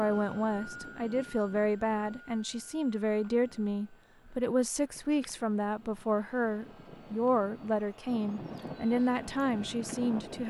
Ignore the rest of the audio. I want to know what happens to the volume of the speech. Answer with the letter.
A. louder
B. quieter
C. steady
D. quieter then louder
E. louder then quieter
C.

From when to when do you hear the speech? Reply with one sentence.
The speech can be heard from 0.0 to 10.4 s.